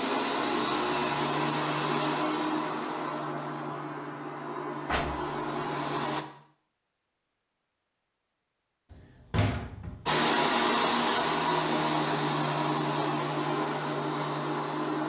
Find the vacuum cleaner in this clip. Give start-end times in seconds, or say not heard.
0.0-6.2, 10.1-15.0.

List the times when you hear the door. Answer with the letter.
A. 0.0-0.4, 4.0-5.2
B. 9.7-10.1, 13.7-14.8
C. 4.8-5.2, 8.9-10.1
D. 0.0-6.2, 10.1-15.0
C.